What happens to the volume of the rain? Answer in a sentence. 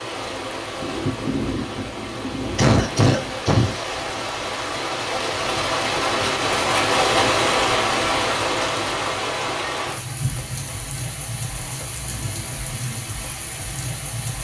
The loudness of the rain goes up, then down.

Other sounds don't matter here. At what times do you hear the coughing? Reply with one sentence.
The coughing can be heard from 2.5 to 3.7 s.